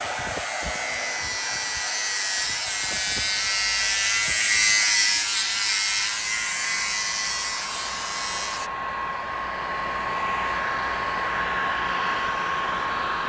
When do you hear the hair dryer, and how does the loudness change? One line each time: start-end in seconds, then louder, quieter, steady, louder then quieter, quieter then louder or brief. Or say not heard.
0.0-13.2 quieter then louder.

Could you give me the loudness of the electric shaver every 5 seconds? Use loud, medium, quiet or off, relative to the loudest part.
loud, loud, off.